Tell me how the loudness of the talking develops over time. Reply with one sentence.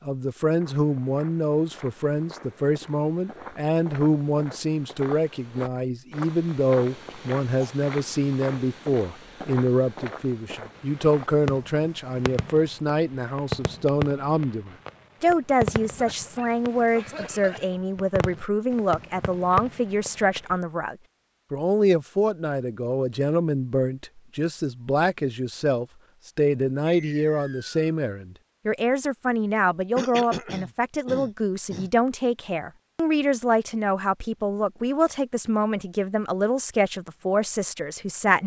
The volume of the talking stays about the same.